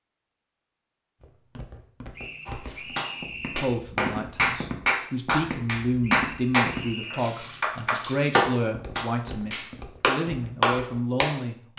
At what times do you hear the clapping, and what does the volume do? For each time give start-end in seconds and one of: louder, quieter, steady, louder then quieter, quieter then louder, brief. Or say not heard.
2.5-11.7 steady.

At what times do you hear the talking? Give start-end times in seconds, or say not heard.
3.5-11.7.